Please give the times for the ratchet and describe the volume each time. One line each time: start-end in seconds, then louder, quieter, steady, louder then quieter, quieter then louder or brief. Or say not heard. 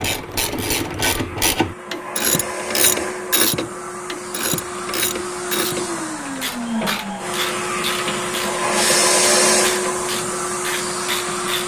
0.0-11.6 quieter.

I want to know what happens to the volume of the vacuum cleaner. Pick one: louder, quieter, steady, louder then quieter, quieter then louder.
louder.